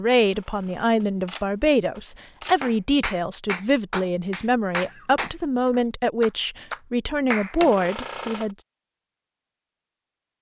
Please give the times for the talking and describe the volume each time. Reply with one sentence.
The talking can be heard from 0.0 to 8.6 s, at a steady volume.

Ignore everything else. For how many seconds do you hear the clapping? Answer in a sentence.
You can hear the clapping for 5 seconds altogether.